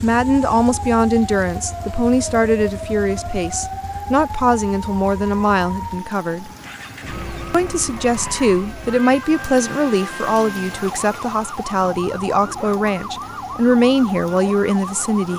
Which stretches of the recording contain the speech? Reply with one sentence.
The speech can be heard from 0.0 to 6.5 s and from 7.5 to 15.3 s.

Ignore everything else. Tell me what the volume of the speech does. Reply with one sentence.
The volume of the speech stays about the same.